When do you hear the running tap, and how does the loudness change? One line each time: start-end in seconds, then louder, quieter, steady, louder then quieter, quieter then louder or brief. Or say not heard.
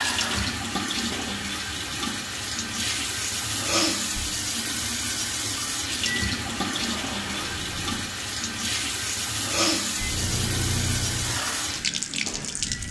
0.0-12.8 steady.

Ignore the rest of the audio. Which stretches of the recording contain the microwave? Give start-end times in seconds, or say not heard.
0.0-1.4, 6.0-8.1, 9.9-12.8.